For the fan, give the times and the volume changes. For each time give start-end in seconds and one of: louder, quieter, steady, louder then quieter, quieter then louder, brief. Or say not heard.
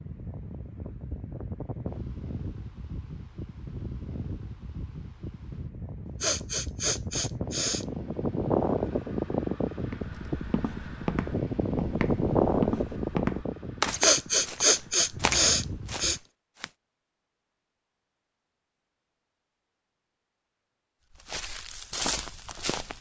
0.0-16.2 louder then quieter.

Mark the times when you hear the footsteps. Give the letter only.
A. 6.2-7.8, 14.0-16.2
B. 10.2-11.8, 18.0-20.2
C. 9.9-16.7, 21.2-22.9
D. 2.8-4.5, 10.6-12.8
C.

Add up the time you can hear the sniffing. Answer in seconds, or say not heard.
4 s.